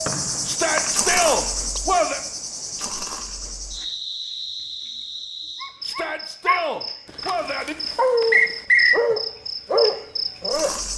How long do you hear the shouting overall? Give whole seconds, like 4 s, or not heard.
4 s.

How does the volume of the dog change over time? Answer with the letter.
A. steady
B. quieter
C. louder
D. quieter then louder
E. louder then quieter
D.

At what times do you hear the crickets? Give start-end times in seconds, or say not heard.
0.0-10.9.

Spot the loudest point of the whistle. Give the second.
9 s.